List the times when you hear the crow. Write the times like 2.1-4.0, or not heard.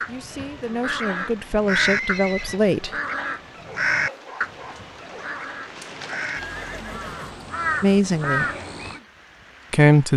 0.0-9.0.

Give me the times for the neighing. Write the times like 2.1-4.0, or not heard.
1.8-2.7, 6.3-7.5.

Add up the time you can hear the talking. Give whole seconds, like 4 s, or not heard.
4 s.